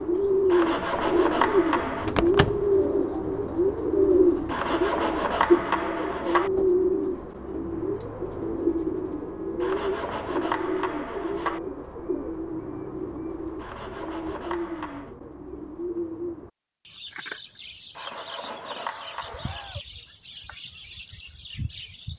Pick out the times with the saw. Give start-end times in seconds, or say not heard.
0.5-2.1, 4.5-6.5, 9.6-11.6, 13.6-15.2, 17.9-19.8.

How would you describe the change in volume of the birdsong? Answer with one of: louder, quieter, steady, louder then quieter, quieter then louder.
quieter.